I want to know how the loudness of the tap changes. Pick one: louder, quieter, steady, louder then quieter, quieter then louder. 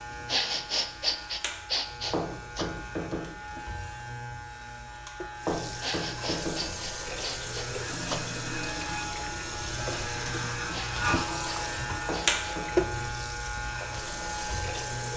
louder.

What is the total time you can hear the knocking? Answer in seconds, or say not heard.
3 s.